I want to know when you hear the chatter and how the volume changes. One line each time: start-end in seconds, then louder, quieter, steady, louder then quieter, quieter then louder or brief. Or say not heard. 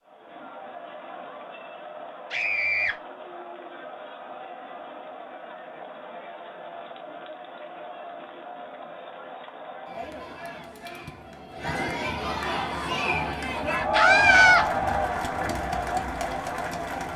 0.1-17.1 louder.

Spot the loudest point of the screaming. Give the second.
14 s.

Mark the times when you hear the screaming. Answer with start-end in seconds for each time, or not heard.
2.3-3.0, 13.9-14.7.